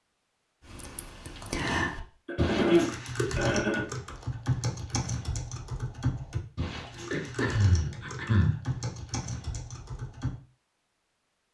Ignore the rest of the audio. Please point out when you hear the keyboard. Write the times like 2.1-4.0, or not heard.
0.7-10.3.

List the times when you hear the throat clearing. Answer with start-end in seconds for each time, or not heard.
2.2-3.9, 7.1-8.7.